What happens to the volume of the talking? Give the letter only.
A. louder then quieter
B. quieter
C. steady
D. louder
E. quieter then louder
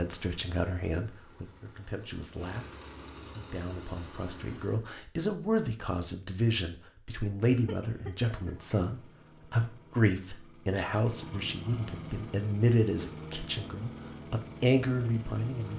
D.